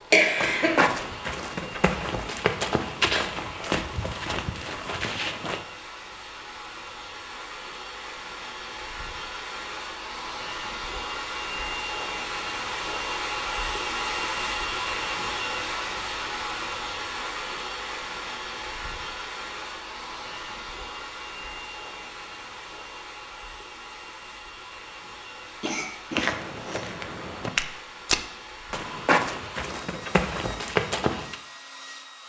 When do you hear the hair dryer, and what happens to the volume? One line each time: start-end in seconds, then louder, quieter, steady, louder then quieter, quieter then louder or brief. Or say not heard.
0.0-32.2 louder then quieter.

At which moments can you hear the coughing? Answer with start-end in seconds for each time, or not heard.
0.1-0.8, 25.6-26.9.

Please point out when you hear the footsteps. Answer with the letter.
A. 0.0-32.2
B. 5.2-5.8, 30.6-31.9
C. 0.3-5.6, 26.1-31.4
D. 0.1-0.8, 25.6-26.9
C.